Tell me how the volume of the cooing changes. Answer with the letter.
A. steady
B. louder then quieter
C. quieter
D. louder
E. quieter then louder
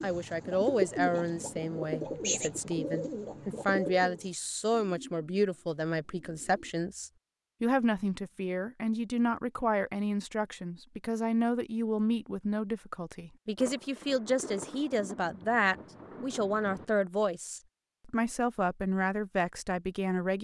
C.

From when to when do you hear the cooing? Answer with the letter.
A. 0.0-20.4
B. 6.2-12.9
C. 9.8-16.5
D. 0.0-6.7
D.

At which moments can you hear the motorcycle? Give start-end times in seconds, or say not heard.
not heard.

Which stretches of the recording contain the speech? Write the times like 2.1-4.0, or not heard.
0.0-20.4.